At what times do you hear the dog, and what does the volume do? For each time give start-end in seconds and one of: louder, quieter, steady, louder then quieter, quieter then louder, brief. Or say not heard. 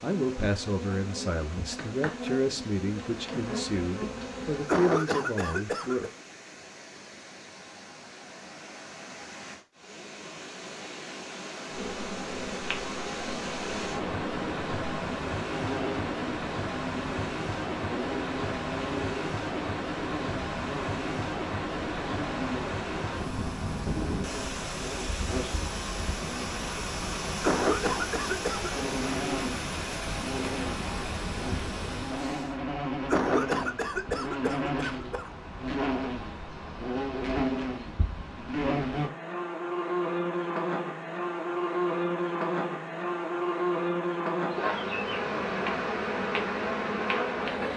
not heard.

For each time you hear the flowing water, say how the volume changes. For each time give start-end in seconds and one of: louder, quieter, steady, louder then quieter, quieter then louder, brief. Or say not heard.
0.0-32.5 louder.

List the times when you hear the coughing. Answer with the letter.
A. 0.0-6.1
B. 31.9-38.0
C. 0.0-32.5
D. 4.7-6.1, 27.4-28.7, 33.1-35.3
D.